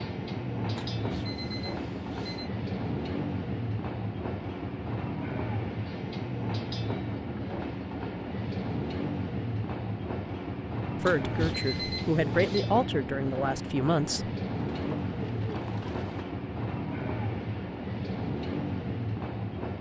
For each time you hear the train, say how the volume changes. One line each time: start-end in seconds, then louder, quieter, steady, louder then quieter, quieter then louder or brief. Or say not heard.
0.0-19.7 steady.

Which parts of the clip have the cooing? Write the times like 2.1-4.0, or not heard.
14.6-16.4.